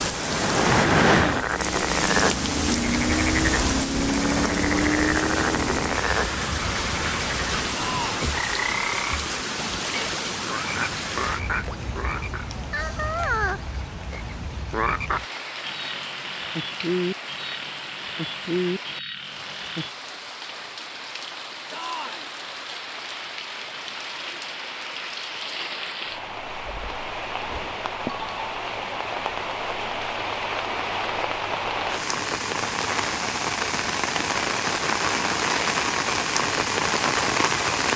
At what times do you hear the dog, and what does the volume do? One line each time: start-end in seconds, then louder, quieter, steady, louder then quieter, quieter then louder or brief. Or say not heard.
not heard.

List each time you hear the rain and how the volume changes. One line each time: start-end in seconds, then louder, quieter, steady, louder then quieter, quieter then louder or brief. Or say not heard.
0.0-37.9 quieter then louder.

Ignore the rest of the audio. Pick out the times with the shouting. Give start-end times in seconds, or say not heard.
7.7-8.2, 21.7-22.3.